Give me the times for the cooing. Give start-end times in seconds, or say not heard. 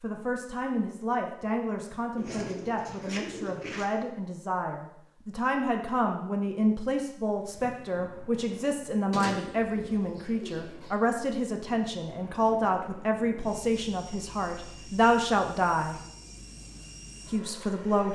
2.1-3.9, 9.1-10.9.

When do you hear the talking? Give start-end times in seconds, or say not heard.
0.0-15.9, 17.3-18.1.